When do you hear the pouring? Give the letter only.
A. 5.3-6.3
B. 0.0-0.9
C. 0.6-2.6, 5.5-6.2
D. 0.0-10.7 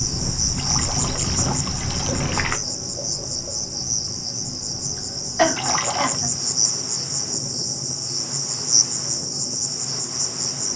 C.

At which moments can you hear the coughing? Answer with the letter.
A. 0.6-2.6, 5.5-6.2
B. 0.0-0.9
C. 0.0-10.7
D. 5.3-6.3
D.